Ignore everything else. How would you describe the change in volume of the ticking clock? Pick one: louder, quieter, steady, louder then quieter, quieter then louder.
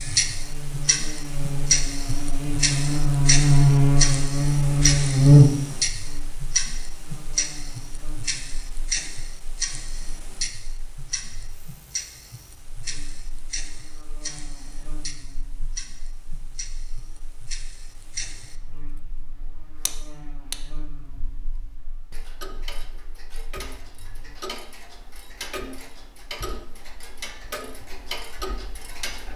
quieter.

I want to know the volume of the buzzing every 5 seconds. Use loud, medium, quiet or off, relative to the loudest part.
loud, loud, quiet, quiet, quiet, off.